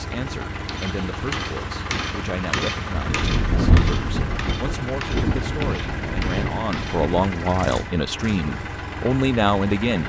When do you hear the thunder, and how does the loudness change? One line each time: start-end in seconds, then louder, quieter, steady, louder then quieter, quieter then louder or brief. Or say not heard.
2.9-7.0 quieter.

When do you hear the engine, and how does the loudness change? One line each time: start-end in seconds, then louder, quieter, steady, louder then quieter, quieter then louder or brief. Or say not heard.
0.0-10.0 steady.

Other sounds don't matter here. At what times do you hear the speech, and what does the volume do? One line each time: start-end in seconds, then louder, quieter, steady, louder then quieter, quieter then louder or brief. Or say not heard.
0.0-10.0 louder.